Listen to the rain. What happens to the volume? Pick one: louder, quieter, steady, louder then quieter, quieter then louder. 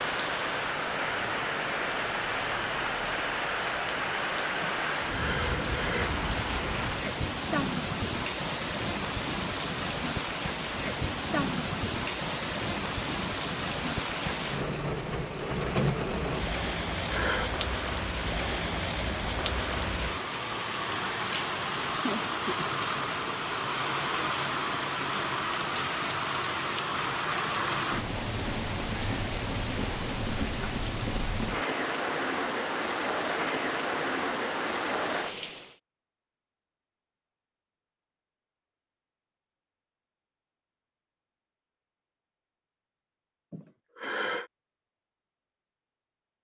steady.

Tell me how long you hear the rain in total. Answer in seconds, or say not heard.
36 s.